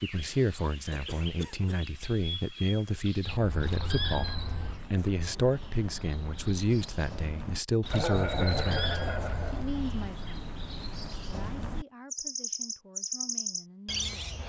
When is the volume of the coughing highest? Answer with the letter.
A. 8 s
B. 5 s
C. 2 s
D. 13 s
A.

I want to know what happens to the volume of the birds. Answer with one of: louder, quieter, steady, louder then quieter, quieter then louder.
louder.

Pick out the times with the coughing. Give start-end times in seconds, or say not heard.
0.9-1.8, 7.9-9.7.